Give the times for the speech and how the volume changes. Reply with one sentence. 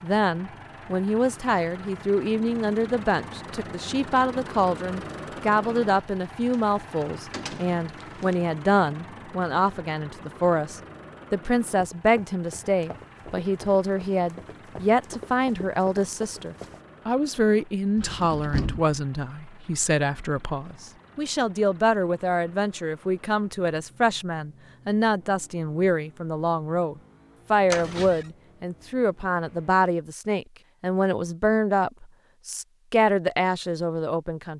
You can hear the speech from 0.0 to 34.5 s, at a steady volume.